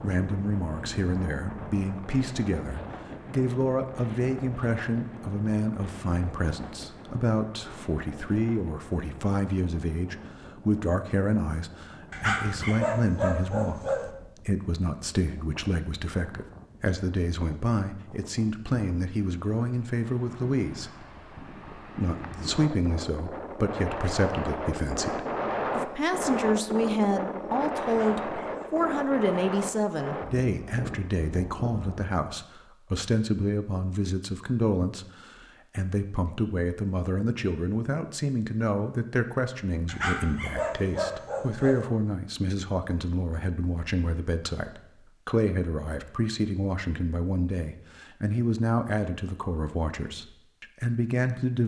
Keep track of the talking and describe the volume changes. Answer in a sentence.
The loudness of the talking stays about the same.